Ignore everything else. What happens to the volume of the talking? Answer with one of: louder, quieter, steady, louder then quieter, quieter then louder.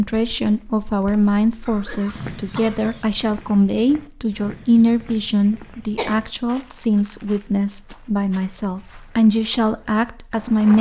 steady.